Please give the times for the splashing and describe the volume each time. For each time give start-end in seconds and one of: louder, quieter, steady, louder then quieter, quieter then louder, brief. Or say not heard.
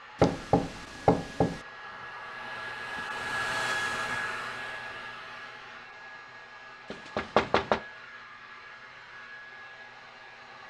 not heard.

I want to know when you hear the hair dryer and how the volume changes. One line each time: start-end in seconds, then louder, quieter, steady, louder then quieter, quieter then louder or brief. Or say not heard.
0.0-10.6 louder then quieter.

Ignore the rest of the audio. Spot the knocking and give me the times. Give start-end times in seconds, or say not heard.
0.2-1.6, 6.9-7.8.